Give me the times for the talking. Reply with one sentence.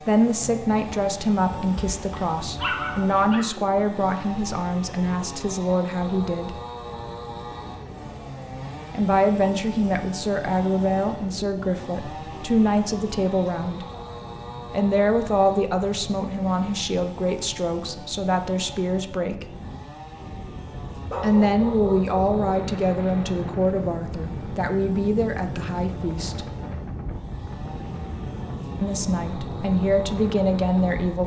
The talking can be heard from 0.1 to 6.5 s, from 8.9 to 13.8 s, from 14.7 to 19.4 s, from 21.2 to 26.4 s and from 28.8 to 31.2 s.